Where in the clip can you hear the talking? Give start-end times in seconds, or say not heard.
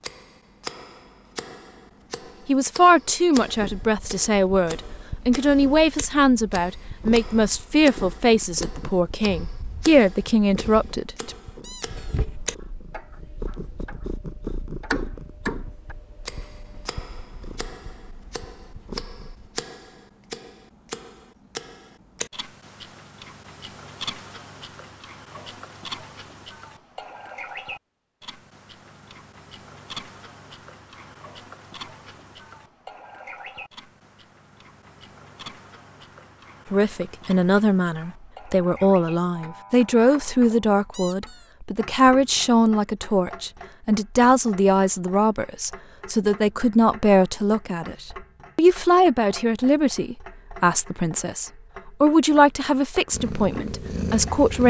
2.5-11.3, 36.7-54.6.